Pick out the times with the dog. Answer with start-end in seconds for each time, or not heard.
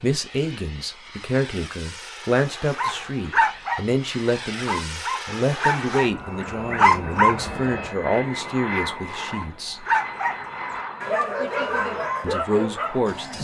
2.8-7.3, 9.3-13.3.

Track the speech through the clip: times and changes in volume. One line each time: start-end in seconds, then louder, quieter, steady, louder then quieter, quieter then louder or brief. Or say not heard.
0.0-9.8 steady
12.2-13.3 brief.